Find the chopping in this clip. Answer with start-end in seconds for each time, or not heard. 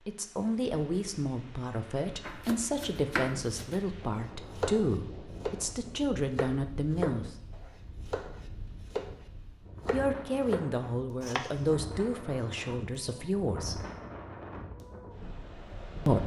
2.2-5.6, 6.3-9.1, 9.8-11.7.